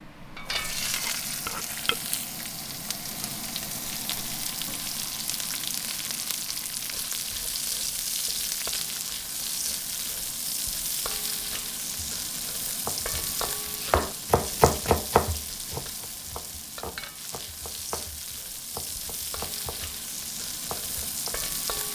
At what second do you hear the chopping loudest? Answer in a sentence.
The volume of the chopping peaks at 15 seconds.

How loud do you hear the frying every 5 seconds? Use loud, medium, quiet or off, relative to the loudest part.
loud, loud, loud, medium, loud.